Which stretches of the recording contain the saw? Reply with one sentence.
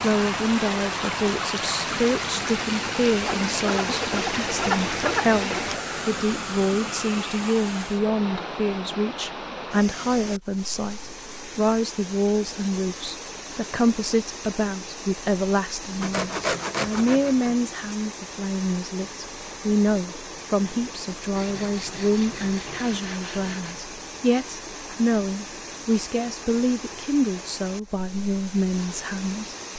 The saw can be heard from 3.2 to 5.7 s, from 16.0 to 17.6 s and from 21.4 to 23.9 s.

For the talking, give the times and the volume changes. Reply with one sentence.
You can hear the talking from 0.0 to 29.6 s, at a steady volume.